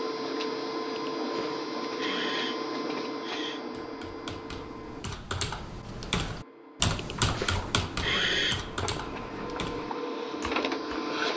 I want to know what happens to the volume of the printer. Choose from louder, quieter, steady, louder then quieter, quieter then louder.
quieter then louder.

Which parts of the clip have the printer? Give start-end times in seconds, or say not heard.
0.0-11.3.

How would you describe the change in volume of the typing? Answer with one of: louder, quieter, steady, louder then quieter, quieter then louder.
louder then quieter.